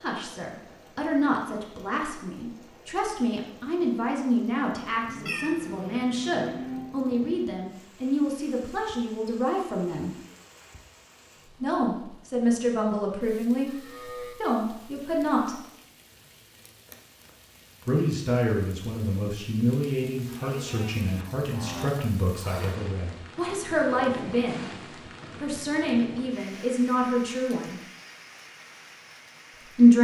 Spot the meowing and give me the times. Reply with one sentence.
You can hear the meowing from 5.2 to 6.0 s.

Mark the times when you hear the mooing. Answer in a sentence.
You can hear the mooing from 5.0 to 7.0 s, from 13.7 to 14.3 s and from 20.2 to 21.9 s.